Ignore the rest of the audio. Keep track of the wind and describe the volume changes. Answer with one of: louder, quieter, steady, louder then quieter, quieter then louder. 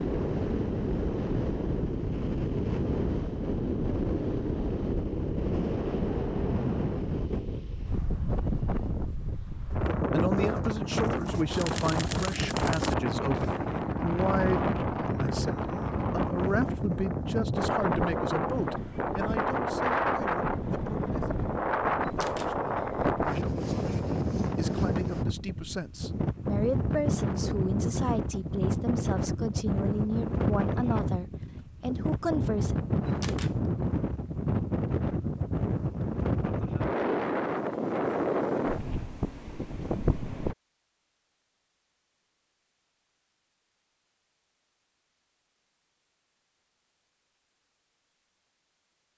steady.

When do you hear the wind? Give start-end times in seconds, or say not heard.
0.0-40.5.